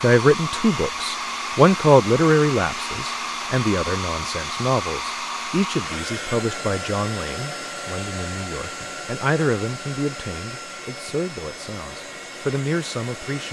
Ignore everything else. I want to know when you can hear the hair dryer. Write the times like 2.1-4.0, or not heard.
0.0-13.4.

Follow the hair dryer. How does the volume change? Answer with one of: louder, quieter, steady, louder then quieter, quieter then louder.
quieter.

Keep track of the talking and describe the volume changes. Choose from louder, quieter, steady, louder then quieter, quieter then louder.
quieter.